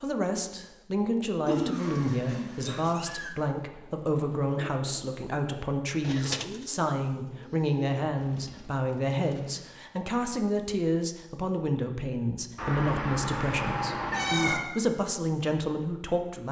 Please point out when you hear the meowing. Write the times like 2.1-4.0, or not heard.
1.4-3.3, 12.6-14.6.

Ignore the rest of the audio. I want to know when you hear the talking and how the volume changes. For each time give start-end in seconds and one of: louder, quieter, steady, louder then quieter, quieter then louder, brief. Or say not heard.
0.0-16.4 steady.